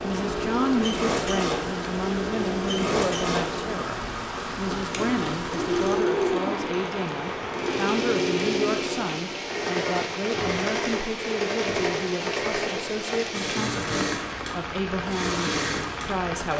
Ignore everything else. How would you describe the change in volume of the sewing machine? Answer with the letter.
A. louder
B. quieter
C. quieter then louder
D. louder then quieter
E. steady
E.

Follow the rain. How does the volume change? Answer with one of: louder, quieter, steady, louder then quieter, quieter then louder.
steady.